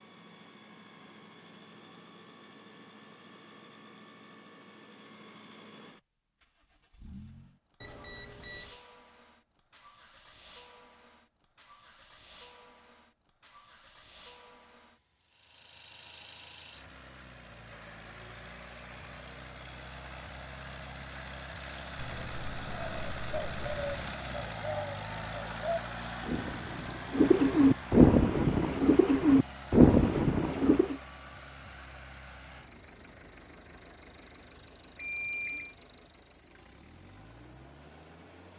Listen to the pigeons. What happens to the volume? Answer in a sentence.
The loudness of the pigeons goes up.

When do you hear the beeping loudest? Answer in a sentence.
The volume of the beeping peaks at 35 seconds.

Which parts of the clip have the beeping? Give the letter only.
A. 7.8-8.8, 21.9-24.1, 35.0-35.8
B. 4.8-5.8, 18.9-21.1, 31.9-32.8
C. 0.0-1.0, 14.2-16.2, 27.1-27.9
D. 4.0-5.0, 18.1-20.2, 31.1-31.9
A.